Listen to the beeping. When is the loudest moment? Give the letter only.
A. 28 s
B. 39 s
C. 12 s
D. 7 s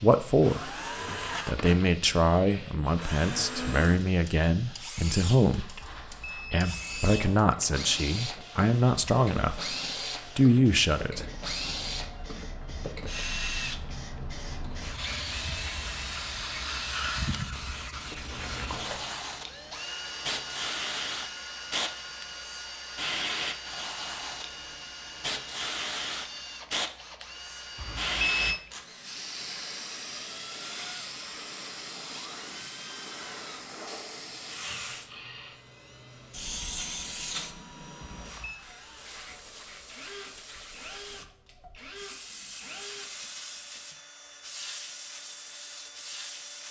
A.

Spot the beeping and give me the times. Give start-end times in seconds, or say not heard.
5.8-7.1, 27.8-28.6, 38.0-38.6.